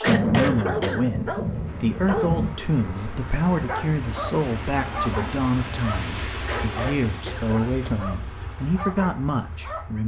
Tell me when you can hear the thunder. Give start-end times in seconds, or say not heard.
0.1-2.5.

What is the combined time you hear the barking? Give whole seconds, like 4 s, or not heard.
10 s.